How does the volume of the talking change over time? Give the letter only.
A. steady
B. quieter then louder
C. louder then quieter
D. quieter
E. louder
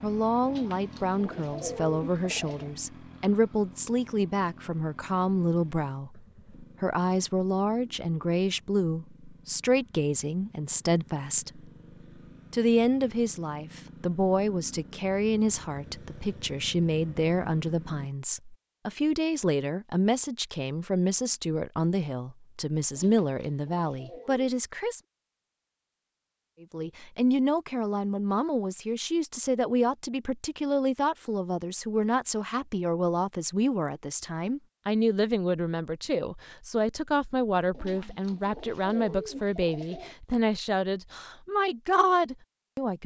A.